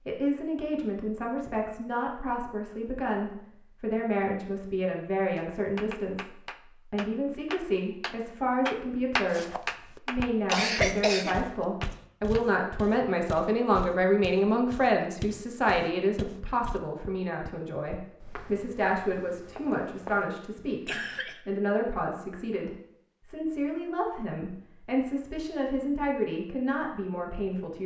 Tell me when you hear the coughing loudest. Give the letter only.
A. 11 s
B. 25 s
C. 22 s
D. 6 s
A.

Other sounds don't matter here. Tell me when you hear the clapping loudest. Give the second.
9 s.